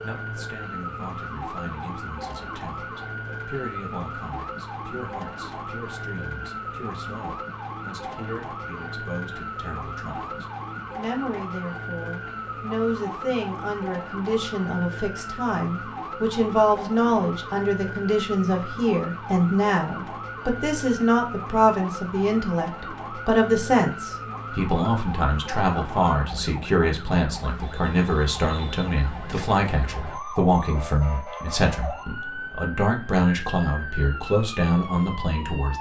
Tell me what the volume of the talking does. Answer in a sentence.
The loudness of the talking goes up.